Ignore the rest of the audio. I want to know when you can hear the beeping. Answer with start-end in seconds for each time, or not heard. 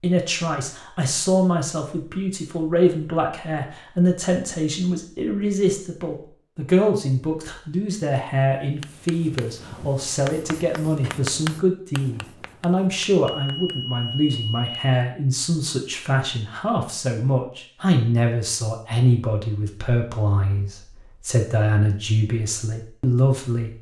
13.2-14.8.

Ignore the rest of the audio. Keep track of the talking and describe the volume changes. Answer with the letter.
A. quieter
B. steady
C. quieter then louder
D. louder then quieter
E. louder
B.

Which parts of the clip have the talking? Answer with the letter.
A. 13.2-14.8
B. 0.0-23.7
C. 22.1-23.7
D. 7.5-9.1
B.